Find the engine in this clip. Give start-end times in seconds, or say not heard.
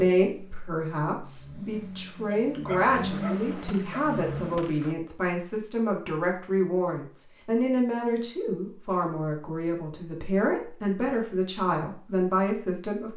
0.2-4.7.